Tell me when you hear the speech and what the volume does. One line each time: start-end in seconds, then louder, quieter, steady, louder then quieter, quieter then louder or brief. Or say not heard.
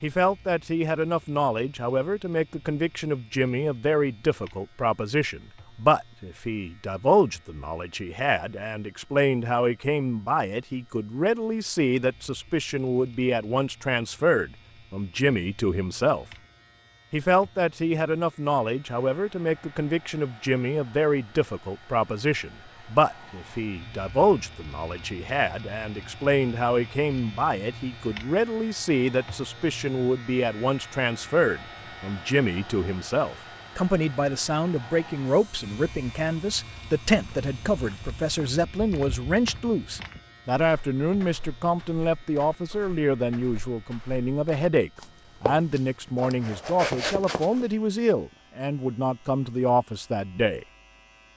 0.0-16.2 steady
17.1-50.6 steady.